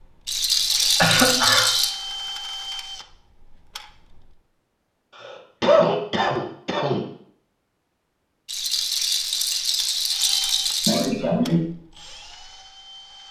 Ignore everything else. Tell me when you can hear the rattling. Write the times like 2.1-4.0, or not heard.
0.2-1.9, 8.4-11.1.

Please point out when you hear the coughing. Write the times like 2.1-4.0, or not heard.
0.9-1.7, 5.2-7.0, 10.8-11.7.